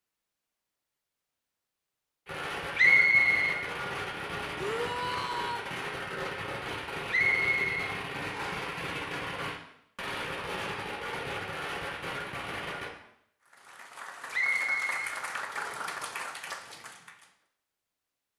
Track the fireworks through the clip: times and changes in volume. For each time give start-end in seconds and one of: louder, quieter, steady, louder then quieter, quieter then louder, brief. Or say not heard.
2.2-12.9 steady.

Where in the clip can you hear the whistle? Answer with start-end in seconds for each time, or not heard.
2.8-3.6, 7.1-8.6, 14.3-15.9.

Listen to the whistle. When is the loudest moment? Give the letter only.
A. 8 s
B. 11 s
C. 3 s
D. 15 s
C.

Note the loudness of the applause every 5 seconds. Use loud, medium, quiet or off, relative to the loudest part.
off, off, loud, loud.